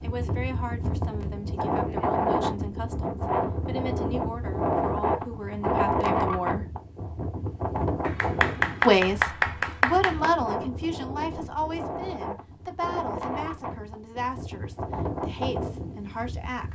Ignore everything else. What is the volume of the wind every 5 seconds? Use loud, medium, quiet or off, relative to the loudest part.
loud, loud, medium, medium.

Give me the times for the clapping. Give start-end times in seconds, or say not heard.
8.0-10.3.